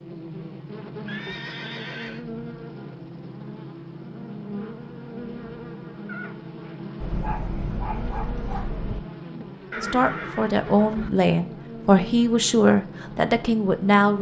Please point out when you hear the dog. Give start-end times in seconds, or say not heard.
7.0-9.0.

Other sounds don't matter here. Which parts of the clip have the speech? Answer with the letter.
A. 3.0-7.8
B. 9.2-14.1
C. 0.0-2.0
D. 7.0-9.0
B.